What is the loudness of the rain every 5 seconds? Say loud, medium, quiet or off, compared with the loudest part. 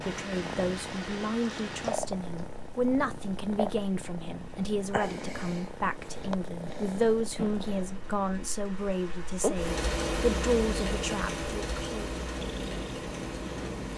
medium, medium, loud.